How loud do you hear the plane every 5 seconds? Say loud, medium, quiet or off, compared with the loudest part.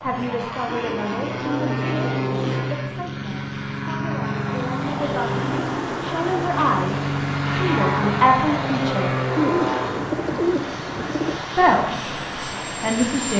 loud, loud, medium.